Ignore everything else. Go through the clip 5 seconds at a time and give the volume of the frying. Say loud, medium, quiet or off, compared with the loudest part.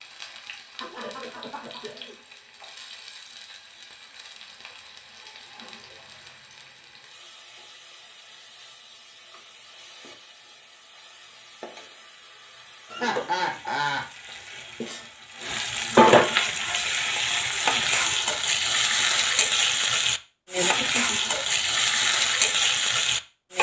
quiet, quiet, quiet, loud, loud.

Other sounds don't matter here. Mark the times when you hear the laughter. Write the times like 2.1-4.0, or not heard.
0.8-2.1, 12.9-14.1, 20.8-21.4.